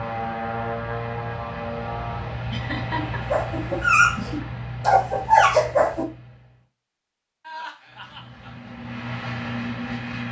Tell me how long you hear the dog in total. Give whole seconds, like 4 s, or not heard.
3 s.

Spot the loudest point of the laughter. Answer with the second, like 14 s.
3 s.